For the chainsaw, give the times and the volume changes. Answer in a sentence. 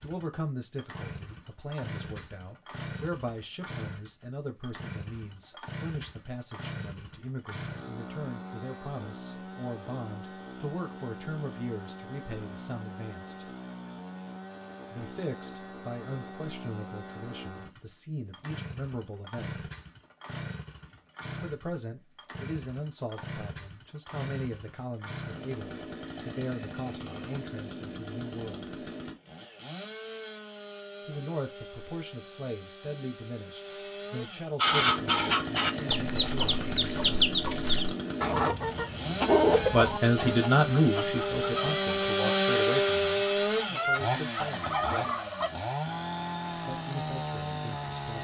You can hear the chainsaw from 0.0 to 48.1 s, getting louder.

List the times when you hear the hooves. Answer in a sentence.
The hooves can't be heard in this clip.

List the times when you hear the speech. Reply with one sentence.
You can hear the speech from 0.0 to 13.5 s, from 14.9 to 19.6 s, from 21.4 to 28.9 s, from 31.1 to 37.4 s, from 39.7 to 45.1 s and from 46.6 to 48.1 s.